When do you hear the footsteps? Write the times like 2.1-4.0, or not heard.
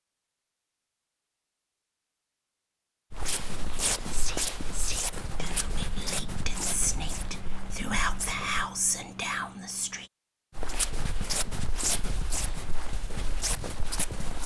3.1-8.7, 10.6-14.4.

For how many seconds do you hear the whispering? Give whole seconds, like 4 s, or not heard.
6 s.